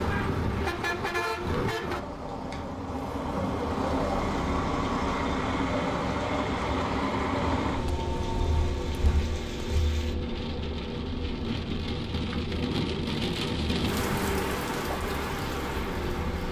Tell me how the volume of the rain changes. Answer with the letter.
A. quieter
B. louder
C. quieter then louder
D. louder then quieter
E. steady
B.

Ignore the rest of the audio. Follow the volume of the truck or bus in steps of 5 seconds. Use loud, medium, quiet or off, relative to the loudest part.
loud, loud, medium, medium.